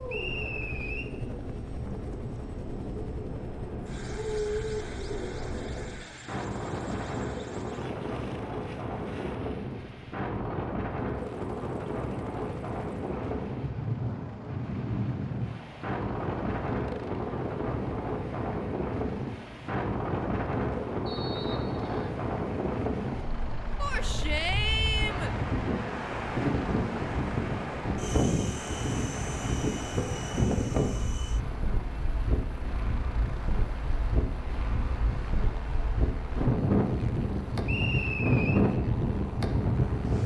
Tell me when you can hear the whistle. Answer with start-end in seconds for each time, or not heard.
0.1-1.1, 21.1-22.1, 37.6-38.6.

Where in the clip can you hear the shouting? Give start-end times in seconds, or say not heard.
23.8-25.4.